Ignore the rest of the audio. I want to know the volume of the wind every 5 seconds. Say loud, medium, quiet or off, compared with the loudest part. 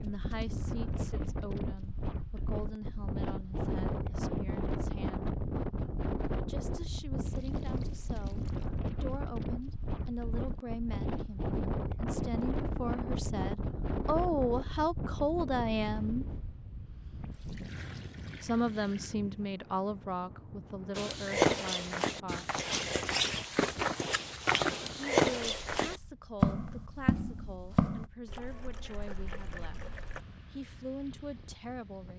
loud, loud, loud, medium, quiet, quiet, quiet.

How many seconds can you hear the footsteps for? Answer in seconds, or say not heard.
7 s.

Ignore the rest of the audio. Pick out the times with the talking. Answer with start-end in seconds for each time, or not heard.
0.0-5.3, 6.5-16.2, 18.4-22.4, 25.1-29.8, 30.5-32.1.